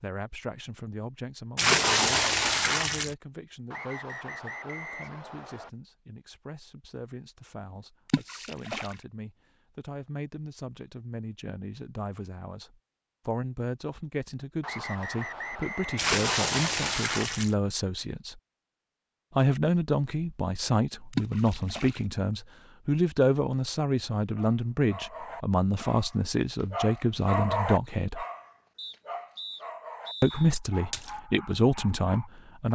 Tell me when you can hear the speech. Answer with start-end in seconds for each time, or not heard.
0.0-18.4, 19.4-28.2, 30.2-32.7.